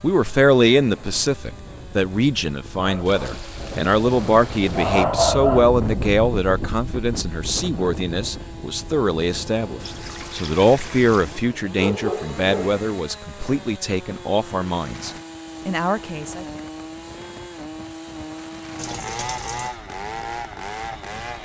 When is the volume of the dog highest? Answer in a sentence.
The loudest moment of the dog is at 5 seconds.